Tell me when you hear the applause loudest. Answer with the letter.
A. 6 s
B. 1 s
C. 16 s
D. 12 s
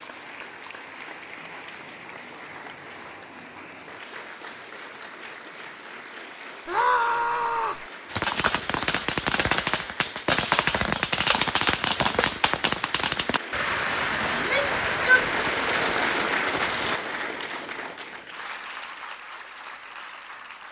C.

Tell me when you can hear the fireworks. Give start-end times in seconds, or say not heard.
8.1-17.0.